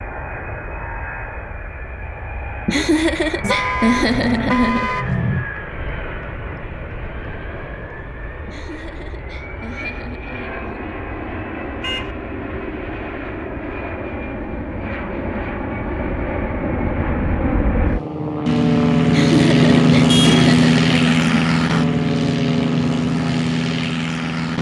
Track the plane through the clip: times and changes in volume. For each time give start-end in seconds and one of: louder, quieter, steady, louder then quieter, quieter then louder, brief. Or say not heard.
0.0-24.5 louder.